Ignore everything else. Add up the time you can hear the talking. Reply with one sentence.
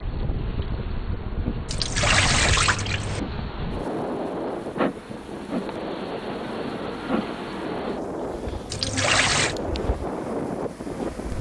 The talking can't be heard in this clip.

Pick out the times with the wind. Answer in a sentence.
You can hear the wind from 0.0 to 11.3 s.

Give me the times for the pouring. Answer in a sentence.
The pouring can be heard from 1.6 to 3.2 s and from 8.7 to 9.6 s.